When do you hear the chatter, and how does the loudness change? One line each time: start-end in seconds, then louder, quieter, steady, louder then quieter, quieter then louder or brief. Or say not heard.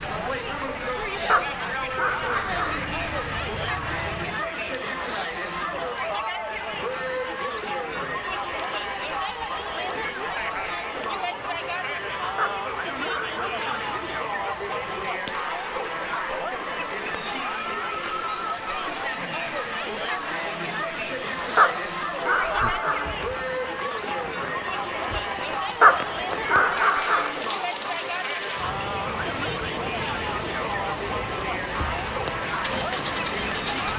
0.0-33.9 steady.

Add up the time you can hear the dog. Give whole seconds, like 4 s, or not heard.
6 s.